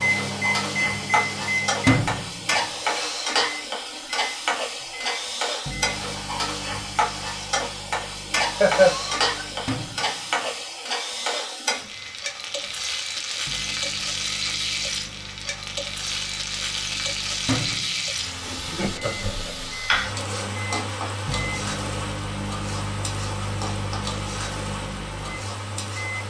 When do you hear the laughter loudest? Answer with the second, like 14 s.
9 s.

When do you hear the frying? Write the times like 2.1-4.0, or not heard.
0.0-26.2.